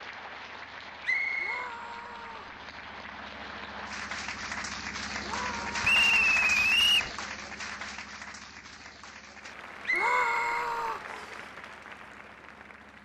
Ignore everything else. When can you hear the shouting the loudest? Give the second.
10 s.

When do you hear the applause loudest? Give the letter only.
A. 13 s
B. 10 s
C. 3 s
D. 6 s
D.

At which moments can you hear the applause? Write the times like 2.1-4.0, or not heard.
0.0-13.0.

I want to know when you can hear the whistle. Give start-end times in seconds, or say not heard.
1.0-1.7, 5.8-7.1, 9.8-11.3.